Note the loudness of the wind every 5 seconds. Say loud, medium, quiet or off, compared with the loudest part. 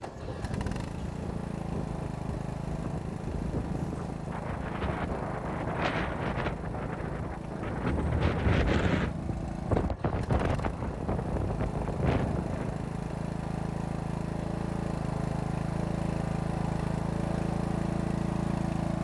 medium, loud, loud, off.